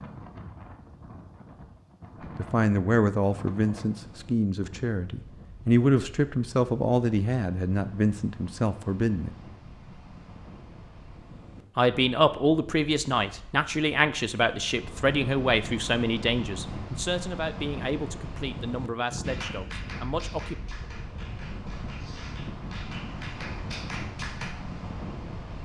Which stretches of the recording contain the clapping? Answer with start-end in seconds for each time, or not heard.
19.2-24.6.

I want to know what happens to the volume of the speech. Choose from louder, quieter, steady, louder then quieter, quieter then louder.
quieter.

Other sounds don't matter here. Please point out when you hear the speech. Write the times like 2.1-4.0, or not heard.
2.4-9.3, 11.8-20.6.